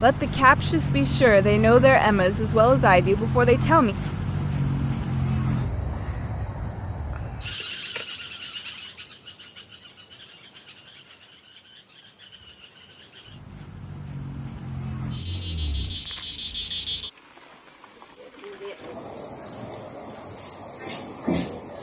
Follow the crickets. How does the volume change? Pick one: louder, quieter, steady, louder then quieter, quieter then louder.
quieter then louder.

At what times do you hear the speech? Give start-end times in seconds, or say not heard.
0.0-4.0.